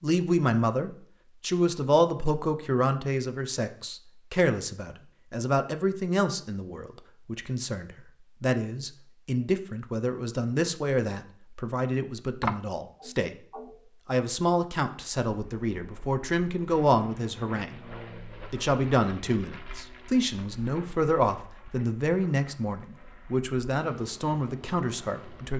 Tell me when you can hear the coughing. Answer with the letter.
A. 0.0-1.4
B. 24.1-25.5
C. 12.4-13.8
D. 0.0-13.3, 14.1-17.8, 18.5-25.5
C.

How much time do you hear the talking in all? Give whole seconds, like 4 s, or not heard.
24 s.